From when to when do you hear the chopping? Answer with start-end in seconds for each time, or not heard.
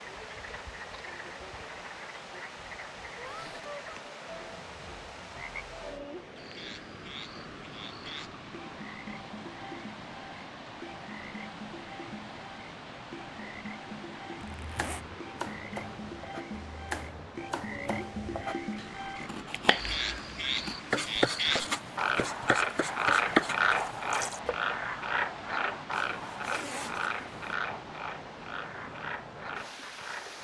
14.6-24.6.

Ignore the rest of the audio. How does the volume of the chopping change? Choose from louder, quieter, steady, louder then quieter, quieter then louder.
louder.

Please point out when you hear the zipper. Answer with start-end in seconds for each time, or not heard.
3.2-3.7, 14.6-15.1, 26.1-27.6.